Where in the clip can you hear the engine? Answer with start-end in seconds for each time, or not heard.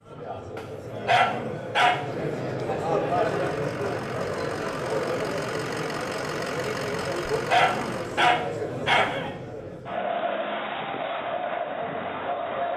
3.2-8.2.